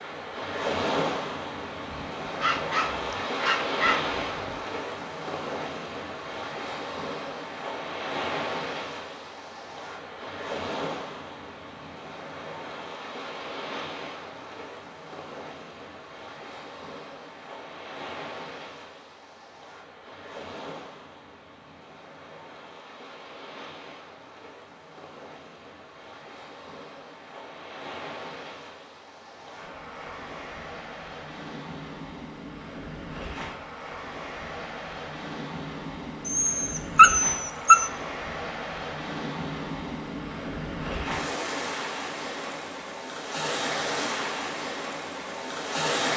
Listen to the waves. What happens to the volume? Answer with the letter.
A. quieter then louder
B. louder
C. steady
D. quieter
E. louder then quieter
A.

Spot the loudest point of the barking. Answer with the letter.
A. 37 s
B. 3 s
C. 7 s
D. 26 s
A.